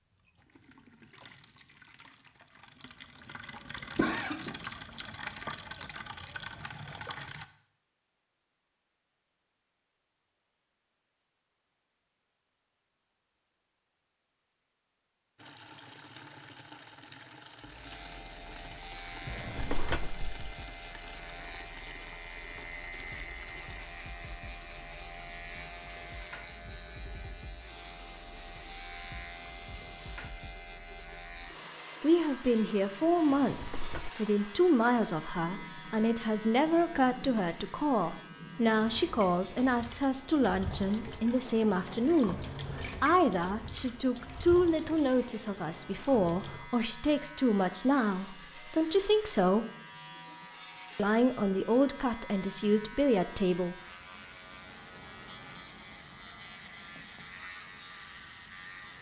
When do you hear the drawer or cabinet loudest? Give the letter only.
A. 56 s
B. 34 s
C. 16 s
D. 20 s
D.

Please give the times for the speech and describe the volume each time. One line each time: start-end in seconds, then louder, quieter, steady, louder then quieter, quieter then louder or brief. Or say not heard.
32.0-49.6 steady
51.0-53.8 brief.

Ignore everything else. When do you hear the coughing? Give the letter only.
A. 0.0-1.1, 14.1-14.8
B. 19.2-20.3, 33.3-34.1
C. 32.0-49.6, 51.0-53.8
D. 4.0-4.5
D.